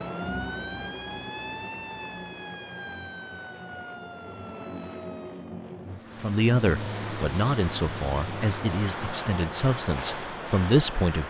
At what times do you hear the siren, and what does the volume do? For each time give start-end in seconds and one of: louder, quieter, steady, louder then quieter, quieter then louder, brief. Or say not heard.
0.0-5.8 quieter.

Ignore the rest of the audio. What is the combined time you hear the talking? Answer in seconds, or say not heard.
5 s.